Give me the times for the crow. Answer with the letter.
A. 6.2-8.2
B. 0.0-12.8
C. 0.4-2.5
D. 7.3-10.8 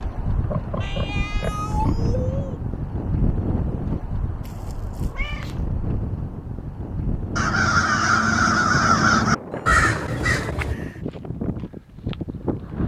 D.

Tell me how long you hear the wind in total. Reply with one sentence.
You can hear the wind for 13 seconds altogether.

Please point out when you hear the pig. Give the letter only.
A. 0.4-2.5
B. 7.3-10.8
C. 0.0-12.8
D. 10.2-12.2
A.